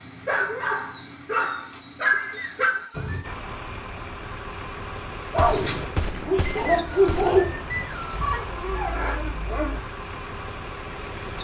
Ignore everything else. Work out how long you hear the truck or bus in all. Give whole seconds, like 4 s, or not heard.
8 s.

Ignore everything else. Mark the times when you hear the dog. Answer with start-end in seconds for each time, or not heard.
0.0-3.2, 5.3-9.8.